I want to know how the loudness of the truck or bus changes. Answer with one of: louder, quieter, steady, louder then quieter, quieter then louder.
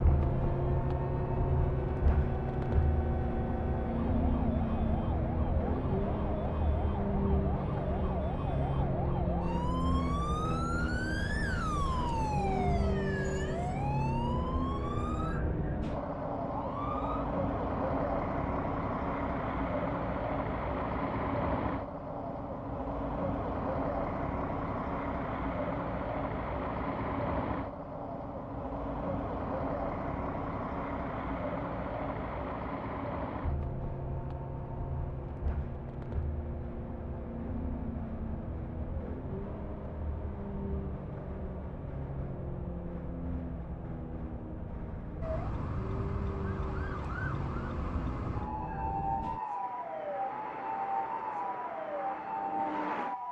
quieter.